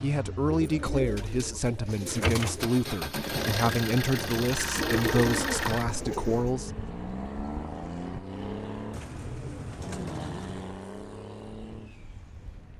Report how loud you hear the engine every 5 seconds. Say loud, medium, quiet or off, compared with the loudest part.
loud, loud, medium.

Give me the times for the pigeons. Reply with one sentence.
The pigeons can be heard from 0.5 to 2.7 s, from 4.8 to 6.5 s and from 8.9 to 10.8 s.